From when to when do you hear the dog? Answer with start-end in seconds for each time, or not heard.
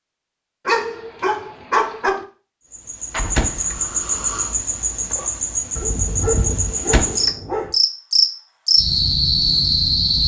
0.7-2.2, 5.8-7.8.